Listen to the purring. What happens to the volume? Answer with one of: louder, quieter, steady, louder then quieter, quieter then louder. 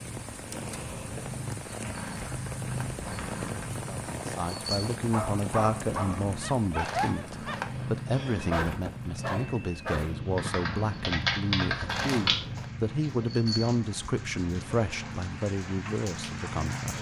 steady.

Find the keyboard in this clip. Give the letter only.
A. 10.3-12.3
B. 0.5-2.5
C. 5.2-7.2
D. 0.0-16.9
A.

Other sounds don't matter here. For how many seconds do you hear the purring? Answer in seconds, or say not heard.
17 s.